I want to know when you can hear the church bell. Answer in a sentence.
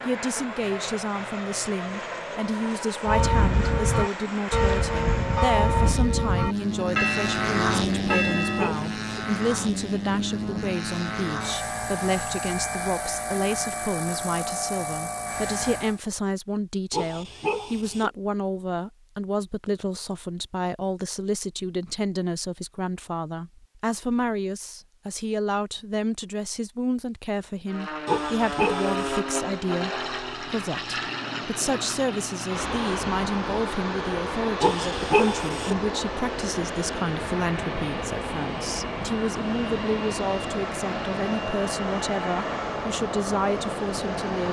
You can hear the church bell from 3.0 to 8.8 s.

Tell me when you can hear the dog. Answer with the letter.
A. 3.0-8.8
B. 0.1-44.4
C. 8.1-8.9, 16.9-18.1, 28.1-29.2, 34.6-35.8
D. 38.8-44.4
C.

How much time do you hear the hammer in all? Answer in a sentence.
You can't hear the hammer here.